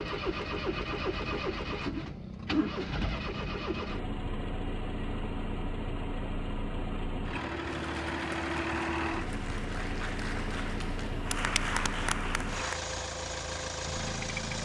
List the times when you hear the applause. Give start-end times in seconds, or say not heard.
7.7-12.8.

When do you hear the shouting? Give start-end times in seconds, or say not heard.
not heard.